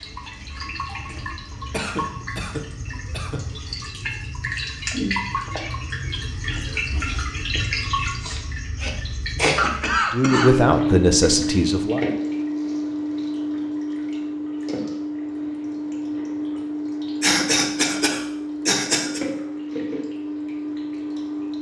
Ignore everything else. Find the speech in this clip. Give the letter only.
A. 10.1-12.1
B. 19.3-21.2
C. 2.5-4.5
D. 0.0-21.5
A.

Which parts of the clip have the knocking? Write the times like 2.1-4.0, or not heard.
not heard.